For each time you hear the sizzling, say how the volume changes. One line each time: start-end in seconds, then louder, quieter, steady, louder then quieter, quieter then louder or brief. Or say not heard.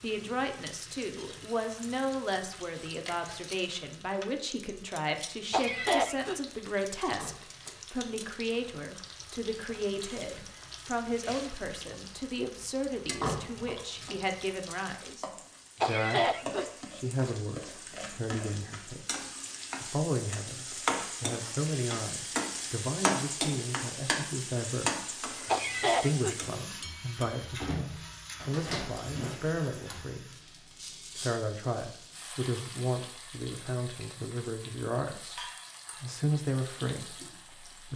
0.0-37.9 louder then quieter.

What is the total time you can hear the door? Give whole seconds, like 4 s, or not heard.
3 s.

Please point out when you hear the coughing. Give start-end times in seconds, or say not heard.
5.5-6.4, 15.8-16.6, 25.4-26.4.